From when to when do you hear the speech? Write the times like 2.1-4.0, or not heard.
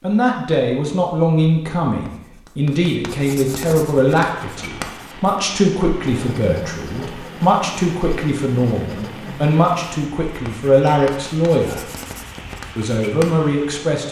0.0-11.8, 12.8-14.0.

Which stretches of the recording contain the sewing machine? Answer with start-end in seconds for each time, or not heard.
not heard.